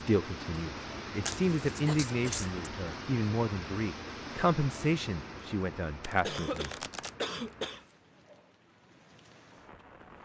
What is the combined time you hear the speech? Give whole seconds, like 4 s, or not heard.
7 s.